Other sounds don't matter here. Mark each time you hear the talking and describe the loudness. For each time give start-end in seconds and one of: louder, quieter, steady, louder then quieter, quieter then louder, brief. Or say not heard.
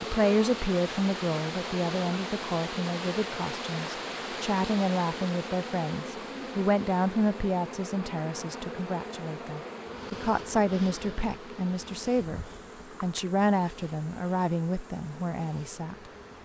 0.0-15.9 steady.